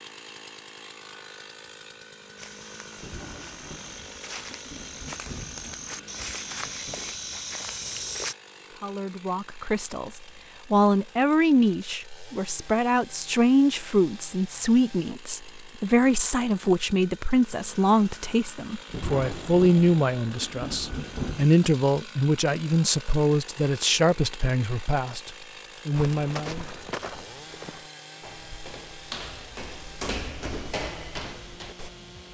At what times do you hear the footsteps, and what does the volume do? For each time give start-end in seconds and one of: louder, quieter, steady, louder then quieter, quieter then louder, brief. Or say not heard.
2.4-8.3 louder
25.9-31.9 quieter then louder.